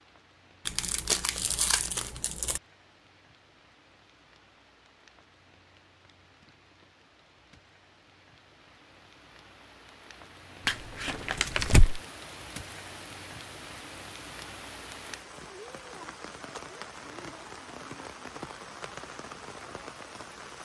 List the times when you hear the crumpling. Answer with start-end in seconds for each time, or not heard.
0.7-2.6, 10.7-12.0.